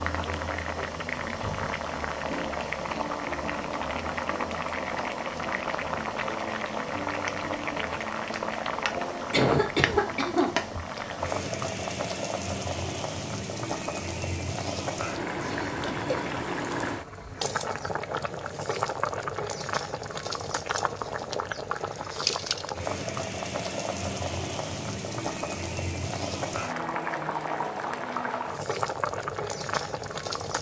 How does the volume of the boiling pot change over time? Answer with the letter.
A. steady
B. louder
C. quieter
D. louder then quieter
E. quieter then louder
A.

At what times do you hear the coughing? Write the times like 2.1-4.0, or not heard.
9.3-10.5, 15.4-16.1.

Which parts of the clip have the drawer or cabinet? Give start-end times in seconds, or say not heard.
not heard.